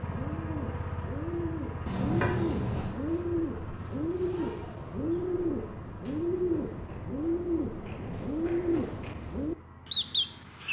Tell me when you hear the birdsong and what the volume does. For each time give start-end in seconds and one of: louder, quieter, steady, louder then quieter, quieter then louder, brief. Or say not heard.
0.0-10.6 louder.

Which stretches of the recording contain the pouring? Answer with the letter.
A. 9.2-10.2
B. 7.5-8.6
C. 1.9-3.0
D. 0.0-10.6
C.